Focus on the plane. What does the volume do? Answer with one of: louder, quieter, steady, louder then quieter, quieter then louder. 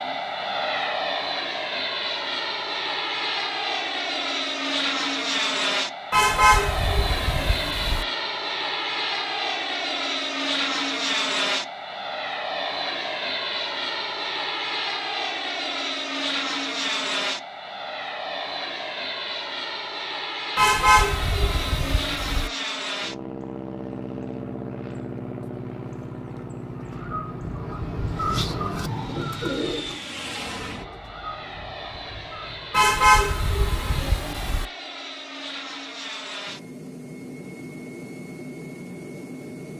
quieter.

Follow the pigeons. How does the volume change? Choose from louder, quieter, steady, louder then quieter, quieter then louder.
louder then quieter.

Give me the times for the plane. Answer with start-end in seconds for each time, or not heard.
0.0-39.7.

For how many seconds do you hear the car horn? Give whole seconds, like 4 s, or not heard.
6 s.